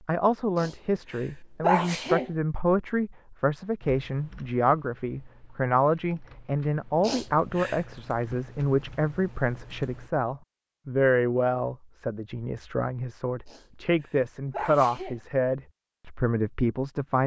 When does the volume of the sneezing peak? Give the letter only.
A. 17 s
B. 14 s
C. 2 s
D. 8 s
C.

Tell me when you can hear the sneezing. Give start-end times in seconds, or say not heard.
0.6-2.3, 7.0-7.8, 13.4-15.2.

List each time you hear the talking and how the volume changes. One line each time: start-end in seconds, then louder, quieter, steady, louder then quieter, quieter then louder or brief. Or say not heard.
0.1-17.2 steady.